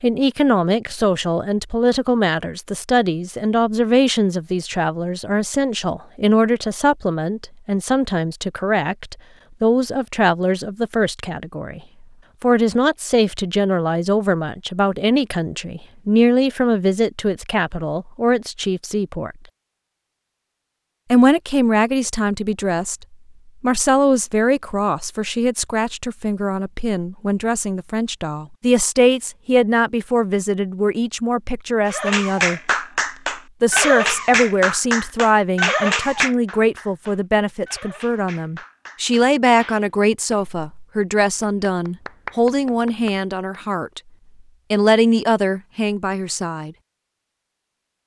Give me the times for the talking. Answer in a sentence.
You can hear the talking from 0.0 to 11.8 s, from 12.4 to 19.4 s, from 21.1 to 32.6 s, from 33.6 to 44.0 s and from 44.7 to 46.8 s.